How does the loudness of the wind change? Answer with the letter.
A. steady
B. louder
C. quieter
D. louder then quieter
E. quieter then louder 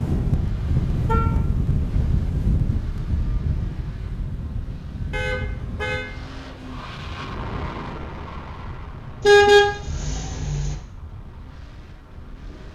C.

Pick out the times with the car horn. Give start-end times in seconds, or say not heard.
0.3-1.3, 5.1-6.0, 9.2-10.8.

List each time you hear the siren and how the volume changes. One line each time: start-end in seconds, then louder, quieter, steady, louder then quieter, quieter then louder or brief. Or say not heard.
not heard.